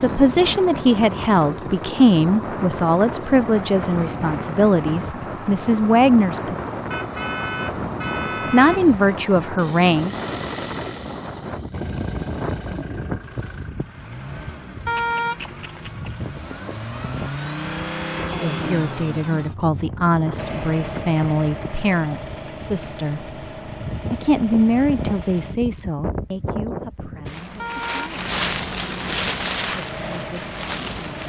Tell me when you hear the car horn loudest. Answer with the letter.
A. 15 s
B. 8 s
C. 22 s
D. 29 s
A.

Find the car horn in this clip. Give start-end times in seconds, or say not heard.
6.9-8.8, 14.8-16.1, 27.6-28.1.